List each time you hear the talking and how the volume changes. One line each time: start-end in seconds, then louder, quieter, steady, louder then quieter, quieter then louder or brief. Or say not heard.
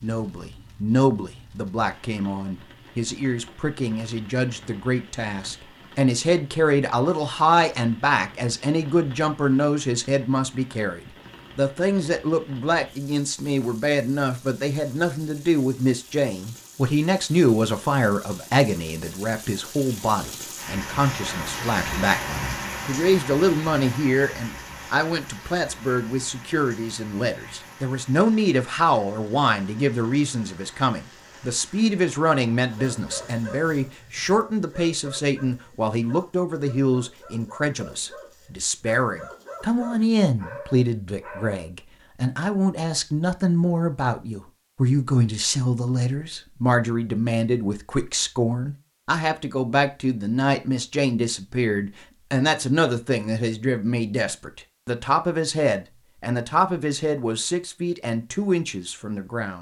0.0-59.5 steady.